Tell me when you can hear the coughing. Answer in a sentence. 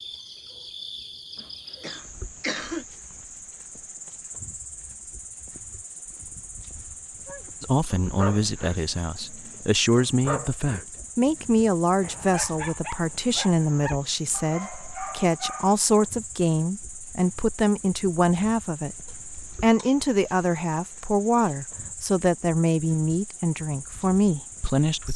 The coughing can be heard from 1.4 to 2.9 s and from 19.1 to 19.9 s.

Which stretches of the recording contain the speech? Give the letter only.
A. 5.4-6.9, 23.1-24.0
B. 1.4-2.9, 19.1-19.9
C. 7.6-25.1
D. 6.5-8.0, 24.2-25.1
C.